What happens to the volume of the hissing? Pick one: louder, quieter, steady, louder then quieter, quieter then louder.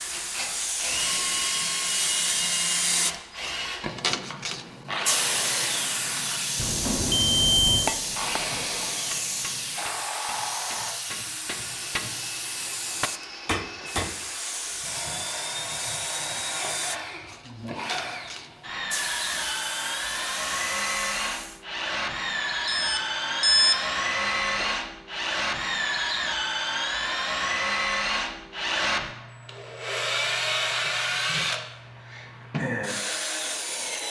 quieter.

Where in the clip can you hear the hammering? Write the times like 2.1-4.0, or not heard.
7.7-14.2.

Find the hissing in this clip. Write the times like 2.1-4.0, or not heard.
0.0-21.6.